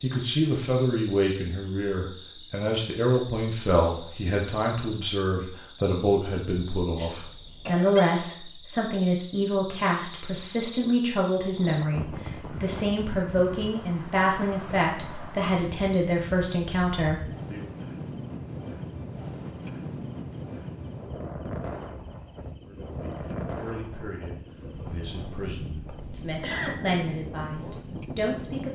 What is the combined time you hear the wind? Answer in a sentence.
The wind can be heard for 17 seconds in total.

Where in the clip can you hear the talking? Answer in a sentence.
The talking can be heard from 0.0 to 17.7 s and from 22.6 to 28.7 s.